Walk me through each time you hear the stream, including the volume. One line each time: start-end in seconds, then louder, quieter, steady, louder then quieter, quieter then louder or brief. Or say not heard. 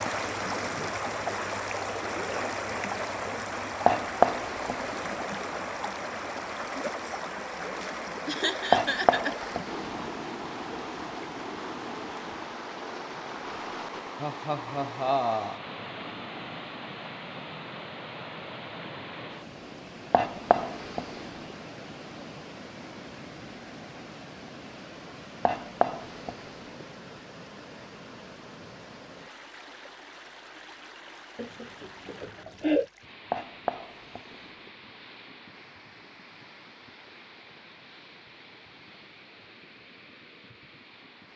0.0-41.3 quieter.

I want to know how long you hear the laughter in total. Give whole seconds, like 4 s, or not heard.
4 s.